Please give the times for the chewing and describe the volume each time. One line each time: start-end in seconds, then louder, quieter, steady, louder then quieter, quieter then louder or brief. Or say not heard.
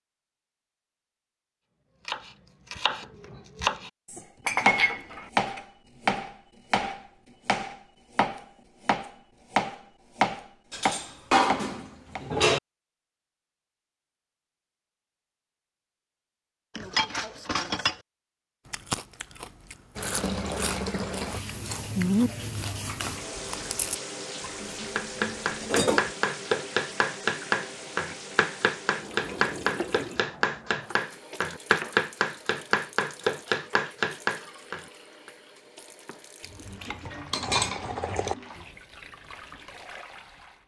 18.6-24.0 louder then quieter.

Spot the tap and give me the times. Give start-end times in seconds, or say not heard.
19.9-40.6.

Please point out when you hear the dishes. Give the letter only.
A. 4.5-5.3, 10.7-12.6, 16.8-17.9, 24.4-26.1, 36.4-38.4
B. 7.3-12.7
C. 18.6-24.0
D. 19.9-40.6
A.